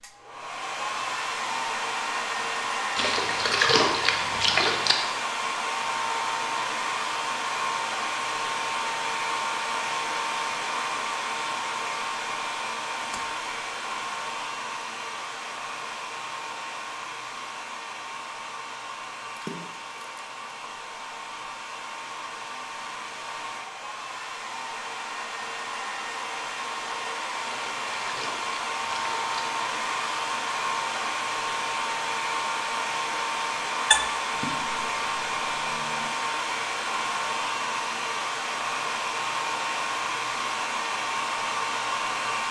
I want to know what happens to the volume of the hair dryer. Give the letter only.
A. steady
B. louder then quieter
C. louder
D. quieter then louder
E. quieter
D.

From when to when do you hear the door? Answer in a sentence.
You can't hear the door here.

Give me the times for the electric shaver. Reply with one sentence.
You can't hear the electric shaver here.